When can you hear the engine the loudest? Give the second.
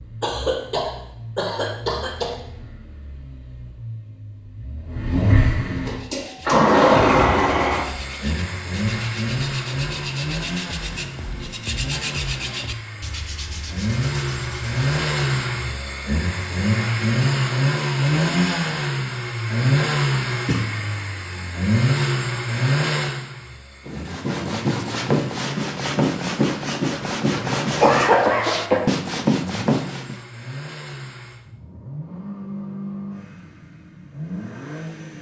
7 s.